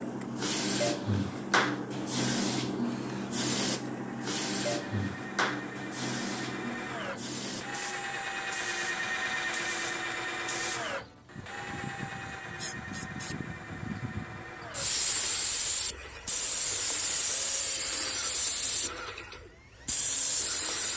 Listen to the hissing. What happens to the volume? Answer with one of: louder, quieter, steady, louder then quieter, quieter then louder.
quieter then louder.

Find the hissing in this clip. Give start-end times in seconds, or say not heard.
0.0-20.9.